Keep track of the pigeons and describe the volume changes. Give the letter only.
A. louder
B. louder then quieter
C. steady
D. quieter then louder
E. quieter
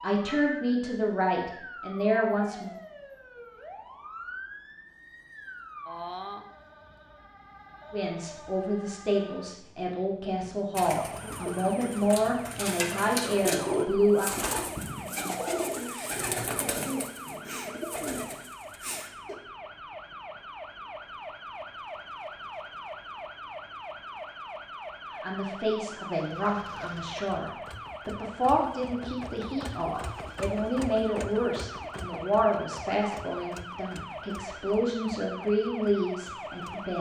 B.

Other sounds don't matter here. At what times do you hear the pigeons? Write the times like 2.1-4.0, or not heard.
10.4-19.4.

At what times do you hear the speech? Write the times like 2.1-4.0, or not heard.
0.0-2.7, 7.9-14.3, 25.2-36.9.